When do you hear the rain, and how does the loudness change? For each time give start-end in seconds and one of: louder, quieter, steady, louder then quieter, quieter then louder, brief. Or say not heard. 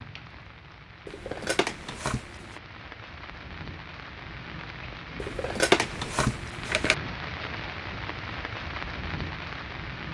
0.0-10.0 louder.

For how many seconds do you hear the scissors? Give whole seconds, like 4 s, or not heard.
3 s.